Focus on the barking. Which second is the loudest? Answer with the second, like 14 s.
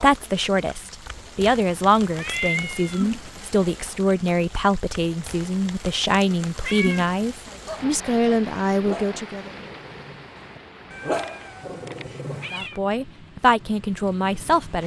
11 s.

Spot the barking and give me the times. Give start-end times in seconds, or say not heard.
7.6-12.7.